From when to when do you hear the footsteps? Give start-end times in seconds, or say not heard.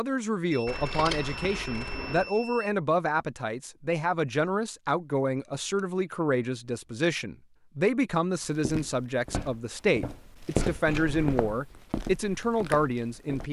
8.4-13.4.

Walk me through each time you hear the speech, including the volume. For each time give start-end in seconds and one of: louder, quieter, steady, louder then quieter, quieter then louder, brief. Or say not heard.
0.0-13.4 steady.